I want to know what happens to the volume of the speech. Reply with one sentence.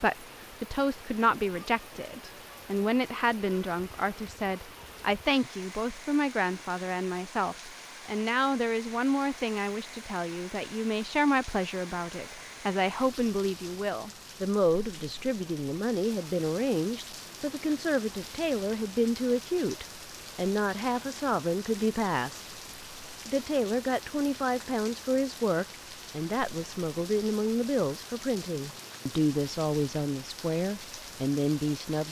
The volume of the speech stays about the same.